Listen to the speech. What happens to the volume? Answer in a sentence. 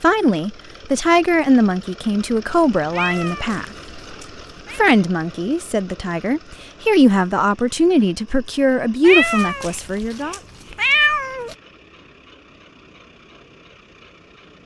The volume of the speech stays about the same.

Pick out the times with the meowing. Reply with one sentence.
You can hear the meowing from 2.9 to 4.8 s and from 9.0 to 11.6 s.